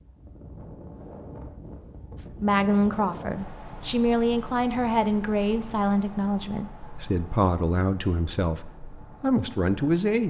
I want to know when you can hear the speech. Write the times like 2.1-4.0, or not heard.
2.1-10.2.